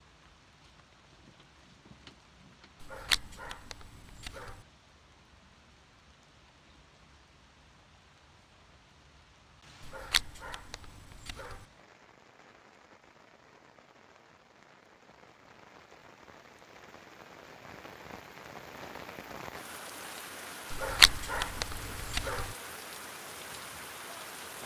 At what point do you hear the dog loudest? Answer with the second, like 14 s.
21 s.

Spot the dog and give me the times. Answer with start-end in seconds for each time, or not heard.
2.8-4.6, 9.8-11.7, 20.7-22.6.